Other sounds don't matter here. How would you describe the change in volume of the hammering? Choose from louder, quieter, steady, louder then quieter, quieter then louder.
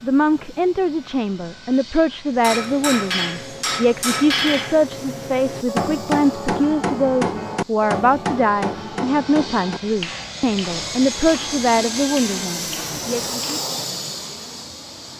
quieter.